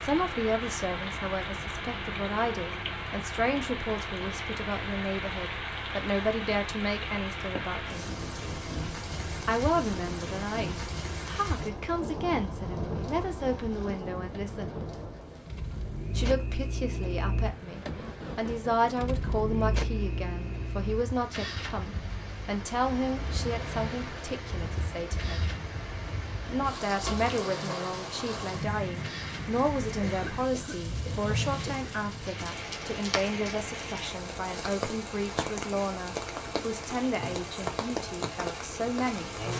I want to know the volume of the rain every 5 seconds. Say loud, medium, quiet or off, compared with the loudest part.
loud, loud, loud, medium, medium, loud, loud, loud.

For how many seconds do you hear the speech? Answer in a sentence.
The speech can be heard for 36 seconds in total.